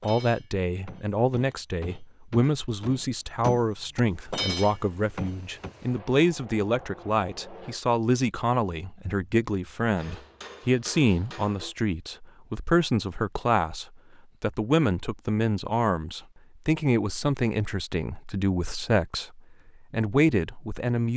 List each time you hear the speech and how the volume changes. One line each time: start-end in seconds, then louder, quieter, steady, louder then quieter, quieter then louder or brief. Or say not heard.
0.0-21.1 steady.